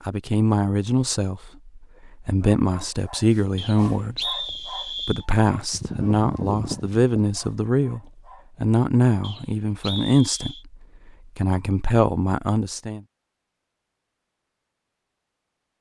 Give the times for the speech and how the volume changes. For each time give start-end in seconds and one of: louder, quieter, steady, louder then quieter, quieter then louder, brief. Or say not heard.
0.1-8.0 steady
8.6-13.0 quieter then louder.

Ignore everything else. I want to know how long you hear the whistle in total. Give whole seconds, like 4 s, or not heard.
3 s.